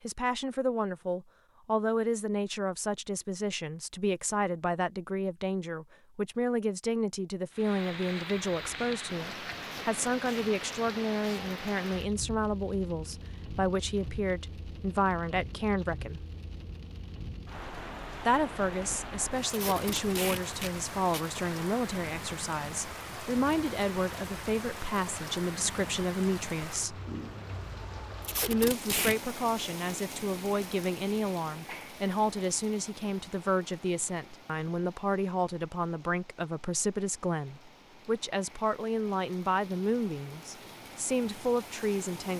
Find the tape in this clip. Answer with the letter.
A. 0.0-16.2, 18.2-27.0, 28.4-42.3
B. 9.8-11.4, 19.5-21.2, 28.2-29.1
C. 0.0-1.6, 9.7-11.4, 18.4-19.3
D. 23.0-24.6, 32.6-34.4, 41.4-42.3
B.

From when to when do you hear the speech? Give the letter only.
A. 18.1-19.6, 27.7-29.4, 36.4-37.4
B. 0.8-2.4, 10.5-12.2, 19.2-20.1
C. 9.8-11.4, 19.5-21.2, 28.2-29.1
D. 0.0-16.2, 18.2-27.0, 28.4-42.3
D.